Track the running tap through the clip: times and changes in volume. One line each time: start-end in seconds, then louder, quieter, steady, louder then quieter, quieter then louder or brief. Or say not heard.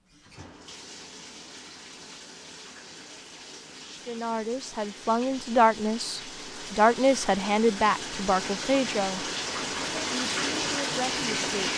0.0-11.7 louder.